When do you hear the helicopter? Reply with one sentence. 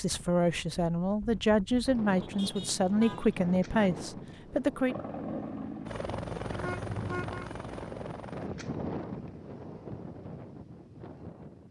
The helicopter can be heard from 4.8 to 8.5 s.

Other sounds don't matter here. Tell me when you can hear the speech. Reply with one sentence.
You can hear the speech from 0.0 to 5.0 s.